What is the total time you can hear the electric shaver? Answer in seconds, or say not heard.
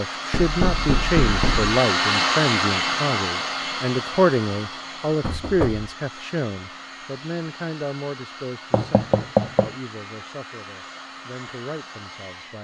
not heard.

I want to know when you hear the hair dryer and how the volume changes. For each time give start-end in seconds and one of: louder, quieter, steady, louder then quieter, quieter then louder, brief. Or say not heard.
0.0-12.5 quieter.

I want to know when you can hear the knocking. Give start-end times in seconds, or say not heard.
0.3-1.8, 5.2-5.9, 8.7-9.7.